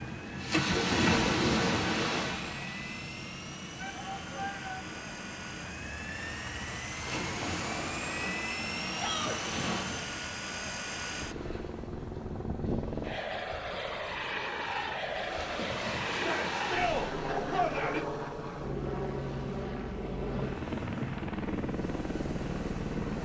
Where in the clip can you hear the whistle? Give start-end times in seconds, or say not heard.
not heard.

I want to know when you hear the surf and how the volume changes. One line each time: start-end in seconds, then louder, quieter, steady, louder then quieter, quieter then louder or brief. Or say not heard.
0.0-23.2 quieter.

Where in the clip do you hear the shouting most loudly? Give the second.
17 s.